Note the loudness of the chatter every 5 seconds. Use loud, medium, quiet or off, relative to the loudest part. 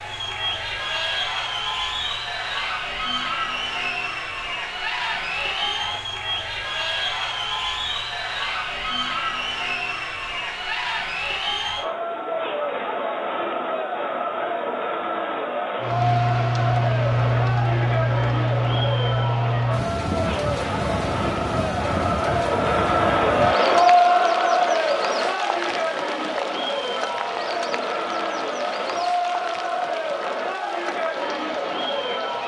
medium, medium, medium, medium, loud, medium, medium.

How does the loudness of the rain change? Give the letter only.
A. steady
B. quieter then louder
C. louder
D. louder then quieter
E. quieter
E.